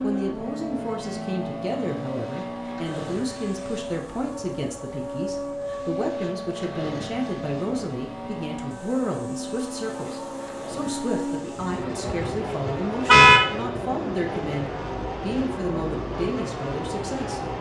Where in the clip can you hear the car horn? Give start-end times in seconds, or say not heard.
12.1-13.4.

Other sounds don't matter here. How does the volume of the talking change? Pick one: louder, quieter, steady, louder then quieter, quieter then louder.
steady.